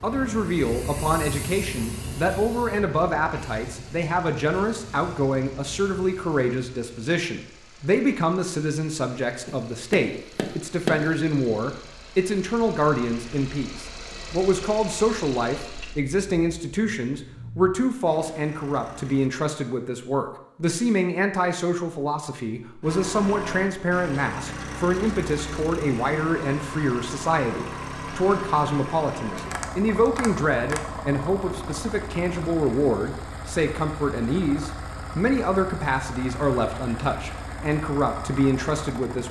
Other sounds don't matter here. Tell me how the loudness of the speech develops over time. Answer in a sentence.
The volume of the speech stays about the same.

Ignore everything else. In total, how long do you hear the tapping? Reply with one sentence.
The tapping can be heard for 3 seconds in total.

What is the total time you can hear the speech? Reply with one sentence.
You can hear the speech for 39 seconds altogether.